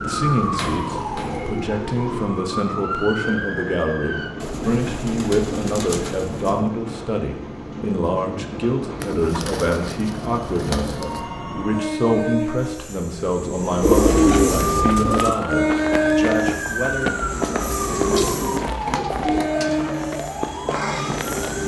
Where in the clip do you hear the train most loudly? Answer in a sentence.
The loudest moment of the train is at 16 seconds.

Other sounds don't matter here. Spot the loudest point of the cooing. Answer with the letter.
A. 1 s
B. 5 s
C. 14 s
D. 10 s
C.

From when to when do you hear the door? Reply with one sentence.
The door can't be heard in this clip.